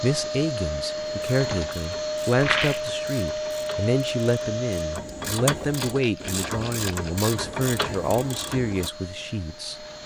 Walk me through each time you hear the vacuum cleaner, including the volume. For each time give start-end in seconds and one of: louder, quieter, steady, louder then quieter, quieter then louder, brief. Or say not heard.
0.0-10.0 quieter.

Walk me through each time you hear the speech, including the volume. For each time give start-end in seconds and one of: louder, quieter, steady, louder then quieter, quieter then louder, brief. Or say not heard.
0.0-9.8 steady.